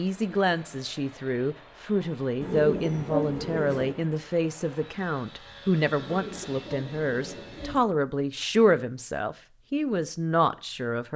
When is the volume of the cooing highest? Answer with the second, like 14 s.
3 s.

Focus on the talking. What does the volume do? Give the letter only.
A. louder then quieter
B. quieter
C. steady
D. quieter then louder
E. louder
C.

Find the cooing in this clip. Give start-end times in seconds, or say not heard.
2.4-4.0, 6.0-7.8.